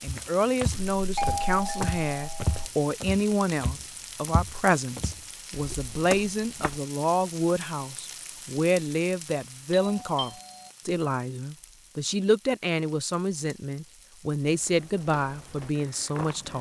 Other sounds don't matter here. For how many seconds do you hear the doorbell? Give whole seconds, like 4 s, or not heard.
3 s.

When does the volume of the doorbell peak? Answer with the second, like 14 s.
1 s.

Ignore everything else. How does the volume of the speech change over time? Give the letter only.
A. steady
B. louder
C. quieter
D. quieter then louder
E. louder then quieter
A.